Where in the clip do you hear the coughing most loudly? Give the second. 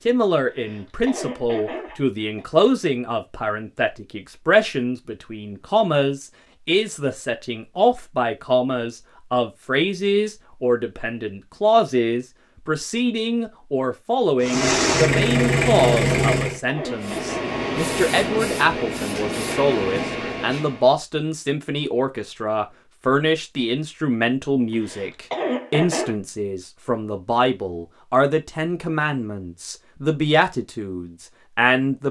25 s.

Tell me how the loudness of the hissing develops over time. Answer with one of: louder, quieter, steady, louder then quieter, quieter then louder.
steady.